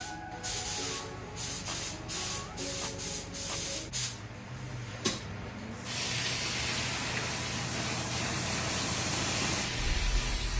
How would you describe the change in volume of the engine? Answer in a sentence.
The volume of the engine goes up.